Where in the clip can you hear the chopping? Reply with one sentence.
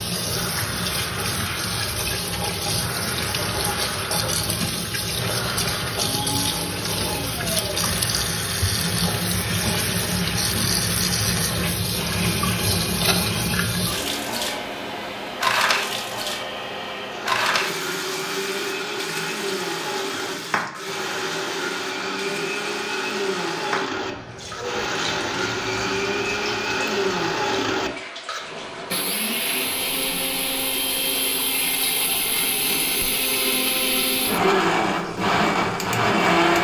The chopping can't be heard in this clip.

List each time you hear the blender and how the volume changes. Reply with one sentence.
The blender can be heard from 0.0 to 36.5 s, getting louder.